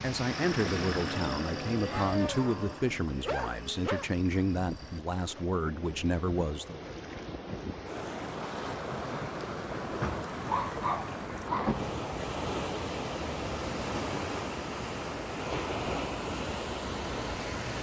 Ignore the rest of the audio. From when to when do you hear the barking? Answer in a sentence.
The barking can be heard from 1.1 to 4.1 s and from 10.4 to 11.8 s.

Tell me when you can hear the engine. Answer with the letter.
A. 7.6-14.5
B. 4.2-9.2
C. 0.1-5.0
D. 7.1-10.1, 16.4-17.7
C.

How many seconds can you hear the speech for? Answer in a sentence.
You can hear the speech for 7 seconds altogether.